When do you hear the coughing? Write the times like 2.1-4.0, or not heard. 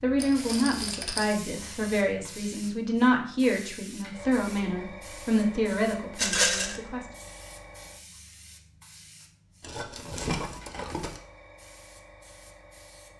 not heard.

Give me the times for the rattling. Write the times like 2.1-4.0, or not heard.
0.2-1.4, 6.2-6.8, 9.6-11.2.